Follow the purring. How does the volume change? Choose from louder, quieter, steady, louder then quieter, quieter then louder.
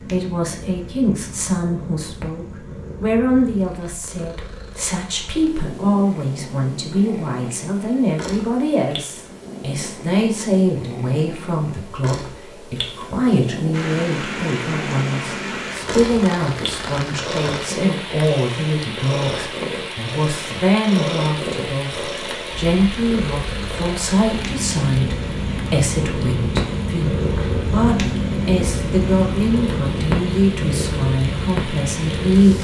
louder.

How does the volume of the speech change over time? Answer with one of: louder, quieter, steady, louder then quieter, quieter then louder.
steady.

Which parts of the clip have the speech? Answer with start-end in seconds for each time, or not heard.
0.0-32.6.